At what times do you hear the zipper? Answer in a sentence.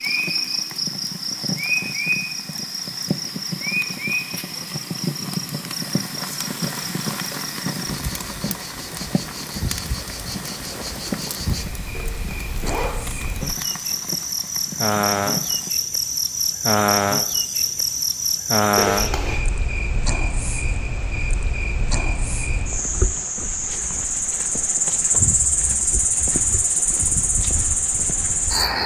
You can hear the zipper from 11.9 to 12.9 s and from 18.8 to 19.4 s.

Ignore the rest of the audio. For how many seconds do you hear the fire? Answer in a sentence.
The fire can be heard for 16 seconds in total.